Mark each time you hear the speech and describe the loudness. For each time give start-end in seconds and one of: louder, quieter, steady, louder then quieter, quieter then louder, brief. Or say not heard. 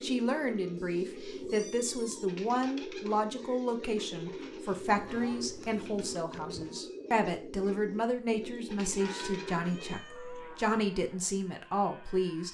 0.0-12.5 steady.